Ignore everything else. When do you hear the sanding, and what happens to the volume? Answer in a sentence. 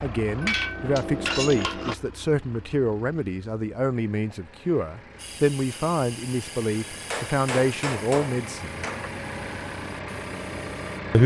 The sanding can't be heard in this clip.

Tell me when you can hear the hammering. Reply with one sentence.
You can hear the hammering from 0.4 to 1.9 s and from 7.1 to 9.1 s.